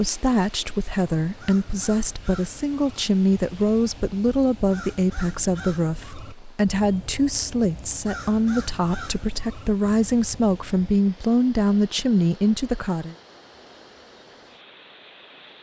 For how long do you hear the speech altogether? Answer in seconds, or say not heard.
13 s.